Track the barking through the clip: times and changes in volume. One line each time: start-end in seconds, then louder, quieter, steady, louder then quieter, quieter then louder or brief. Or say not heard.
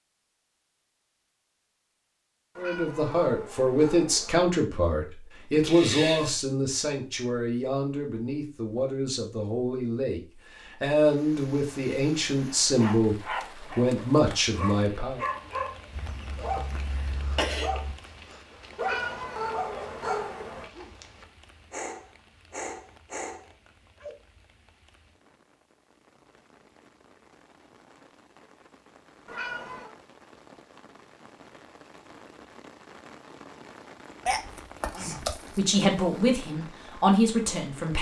12.8-24.1 steady.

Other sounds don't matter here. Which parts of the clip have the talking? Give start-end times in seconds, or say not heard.
2.5-15.2, 35.0-37.9.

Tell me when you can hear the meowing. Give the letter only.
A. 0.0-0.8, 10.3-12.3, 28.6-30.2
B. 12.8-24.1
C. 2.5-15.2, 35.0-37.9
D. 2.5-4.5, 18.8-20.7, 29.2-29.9
D.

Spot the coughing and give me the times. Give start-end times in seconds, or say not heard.
5.6-6.4, 15.9-17.9, 34.2-35.8.